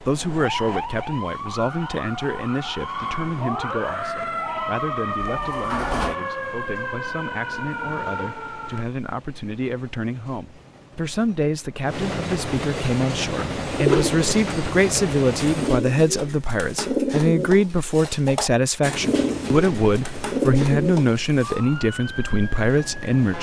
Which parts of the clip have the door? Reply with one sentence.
You can hear the door from 5.2 to 6.2 s.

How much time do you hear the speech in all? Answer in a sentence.
You can hear the speech for 23 seconds altogether.